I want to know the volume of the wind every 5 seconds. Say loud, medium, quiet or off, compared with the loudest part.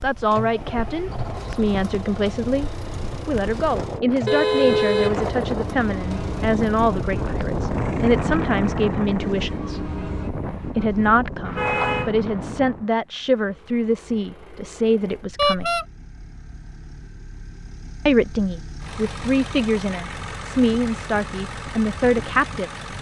medium, loud, medium, off, off.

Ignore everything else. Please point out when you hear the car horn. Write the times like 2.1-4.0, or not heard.
4.2-5.3, 11.4-12.1, 15.3-15.8.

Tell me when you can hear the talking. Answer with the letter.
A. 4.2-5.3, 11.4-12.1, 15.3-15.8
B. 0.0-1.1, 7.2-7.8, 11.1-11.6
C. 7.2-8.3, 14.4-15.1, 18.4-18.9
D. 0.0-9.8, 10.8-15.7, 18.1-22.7
D.